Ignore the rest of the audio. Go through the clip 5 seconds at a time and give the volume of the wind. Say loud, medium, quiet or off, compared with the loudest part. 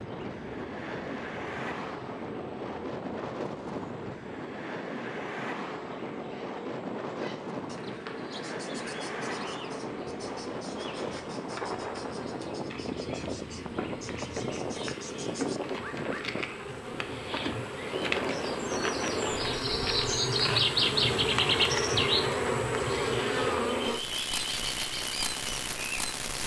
loud, loud, loud, loud, off, off.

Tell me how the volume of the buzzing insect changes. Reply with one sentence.
The loudness of the buzzing insect goes up.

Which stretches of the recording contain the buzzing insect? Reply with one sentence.
You can hear the buzzing insect from 0.0 to 26.4 s.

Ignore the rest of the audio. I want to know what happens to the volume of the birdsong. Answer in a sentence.
The loudness of the birdsong goes up.